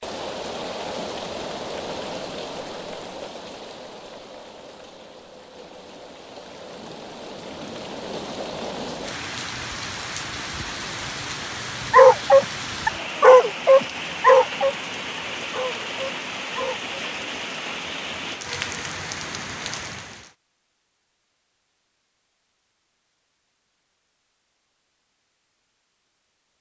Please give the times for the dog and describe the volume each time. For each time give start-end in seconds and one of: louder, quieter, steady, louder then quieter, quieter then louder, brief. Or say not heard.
11.9-16.9 quieter.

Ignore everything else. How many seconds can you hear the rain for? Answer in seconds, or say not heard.
20 s.